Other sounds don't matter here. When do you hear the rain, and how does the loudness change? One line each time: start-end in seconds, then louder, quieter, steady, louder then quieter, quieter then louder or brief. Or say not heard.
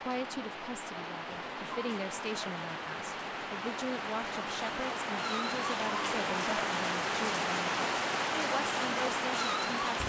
0.0-10.0 louder.